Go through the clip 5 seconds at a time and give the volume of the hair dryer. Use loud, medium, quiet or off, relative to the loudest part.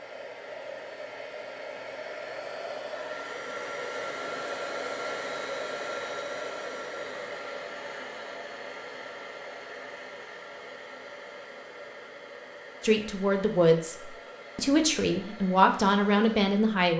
loud, loud, medium, medium.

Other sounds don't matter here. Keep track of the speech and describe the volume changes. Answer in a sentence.
The volume of the speech goes down, then up.